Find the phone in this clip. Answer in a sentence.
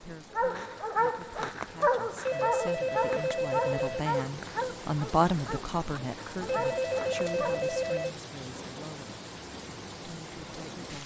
You can hear the phone from 2.2 to 4.0 s and from 6.5 to 8.2 s.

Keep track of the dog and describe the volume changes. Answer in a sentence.
The volume of the dog goes down.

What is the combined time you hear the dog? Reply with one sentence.
The dog can be heard for 7 seconds in total.